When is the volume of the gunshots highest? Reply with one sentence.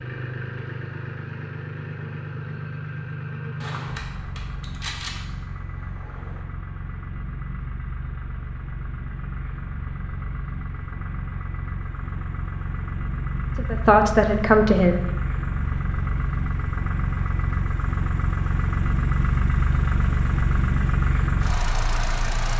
The loudest moment of the gunshots is at 5 seconds.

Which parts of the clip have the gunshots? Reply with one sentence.
The gunshots can be heard from 3.6 to 6.4 s.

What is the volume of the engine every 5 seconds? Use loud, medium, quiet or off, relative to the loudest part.
medium, medium, medium, loud, loud.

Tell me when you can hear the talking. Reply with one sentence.
You can hear the talking from 13.6 to 15.0 s.